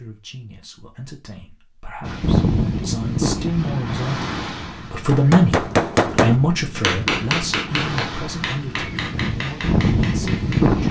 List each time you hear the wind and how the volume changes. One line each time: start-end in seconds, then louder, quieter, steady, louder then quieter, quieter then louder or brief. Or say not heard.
2.0-10.8 quieter then louder.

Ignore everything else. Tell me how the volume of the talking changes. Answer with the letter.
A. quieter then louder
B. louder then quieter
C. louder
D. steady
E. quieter
B.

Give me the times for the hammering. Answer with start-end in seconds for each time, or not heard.
5.0-10.7.